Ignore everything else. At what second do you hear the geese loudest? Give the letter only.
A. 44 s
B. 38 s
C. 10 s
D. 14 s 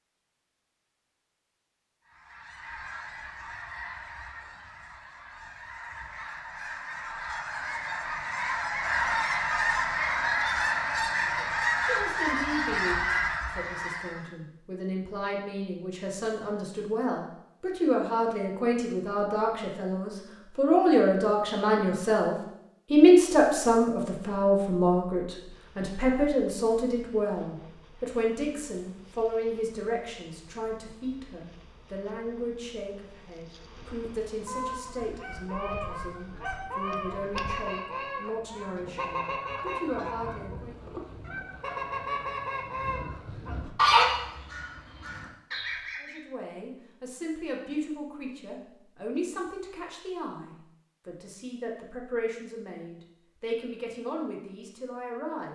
A.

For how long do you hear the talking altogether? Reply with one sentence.
You can hear the talking for 39 seconds altogether.